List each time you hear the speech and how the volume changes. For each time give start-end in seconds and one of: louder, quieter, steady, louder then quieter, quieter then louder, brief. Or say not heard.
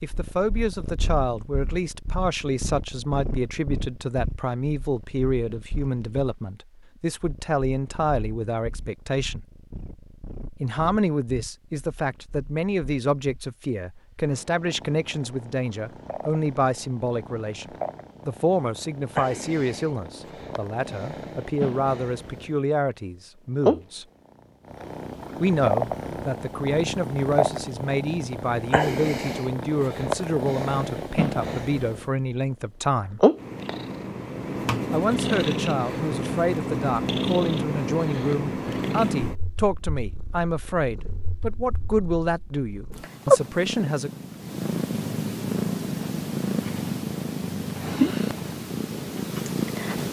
0.0-9.4 steady
10.6-24.1 steady
25.4-33.2 steady
34.9-44.1 steady.